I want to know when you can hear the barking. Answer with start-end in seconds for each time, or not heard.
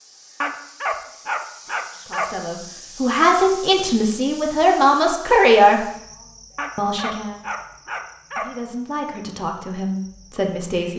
0.4-2.3, 6.5-8.4.